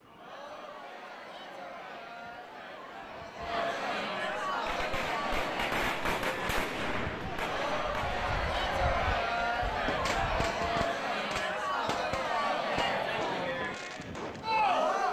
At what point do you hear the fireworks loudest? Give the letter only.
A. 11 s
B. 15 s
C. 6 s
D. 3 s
C.